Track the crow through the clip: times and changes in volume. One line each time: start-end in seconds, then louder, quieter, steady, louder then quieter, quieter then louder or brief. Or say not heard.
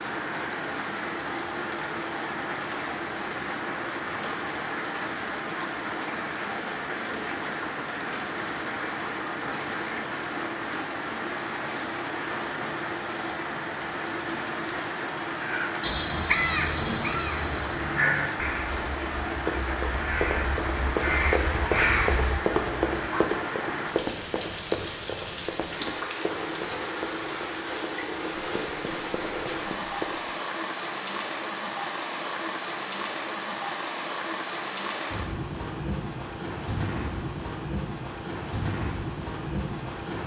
15.3-23.3 quieter then louder.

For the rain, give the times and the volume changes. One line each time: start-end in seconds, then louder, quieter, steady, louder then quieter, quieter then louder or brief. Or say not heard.
0.0-40.2 steady.